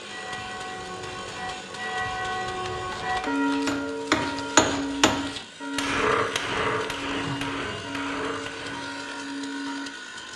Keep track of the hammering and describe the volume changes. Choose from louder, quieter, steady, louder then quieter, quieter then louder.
quieter.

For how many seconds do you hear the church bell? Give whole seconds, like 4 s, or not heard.
10 s.